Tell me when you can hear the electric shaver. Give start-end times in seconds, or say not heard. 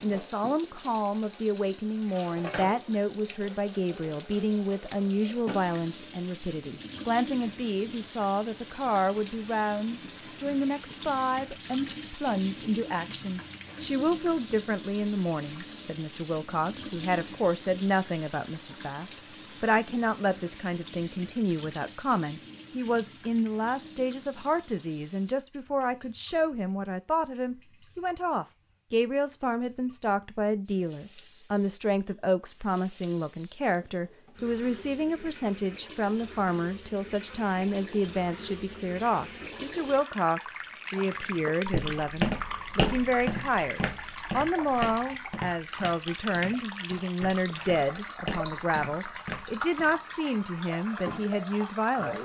not heard.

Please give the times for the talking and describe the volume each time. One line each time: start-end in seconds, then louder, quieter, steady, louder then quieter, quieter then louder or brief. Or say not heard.
0.0-52.2 steady.